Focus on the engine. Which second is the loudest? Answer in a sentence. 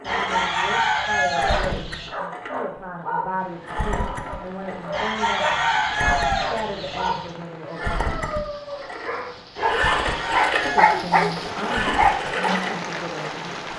The volume of the engine peaks at 10 seconds.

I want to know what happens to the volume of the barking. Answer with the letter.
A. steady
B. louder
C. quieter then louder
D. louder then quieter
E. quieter
B.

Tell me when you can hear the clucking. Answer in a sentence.
The clucking can be heard from 0.0 to 2.1 s, from 4.9 to 7.3 s and from 9.6 to 11.1 s.